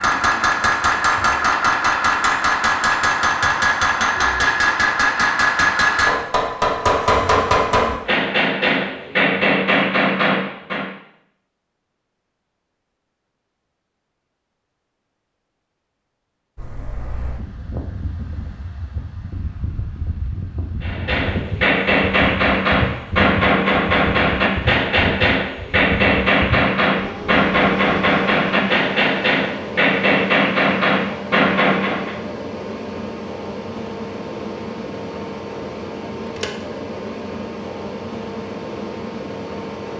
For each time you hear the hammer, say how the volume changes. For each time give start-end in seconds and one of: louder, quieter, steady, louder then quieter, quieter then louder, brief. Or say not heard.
0.0-10.9 steady
20.8-32.1 steady.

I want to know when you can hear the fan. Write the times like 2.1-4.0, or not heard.
16.6-39.9.